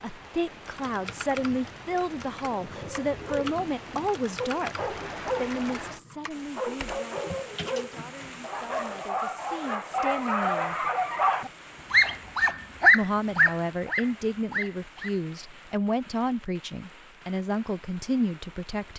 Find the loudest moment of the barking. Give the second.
13 s.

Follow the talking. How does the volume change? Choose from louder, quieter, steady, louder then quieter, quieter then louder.
quieter then louder.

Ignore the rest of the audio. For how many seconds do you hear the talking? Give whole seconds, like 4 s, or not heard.
17 s.